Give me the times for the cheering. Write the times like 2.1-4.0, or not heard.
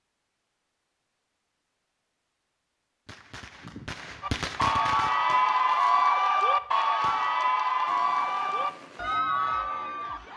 4.2-10.3.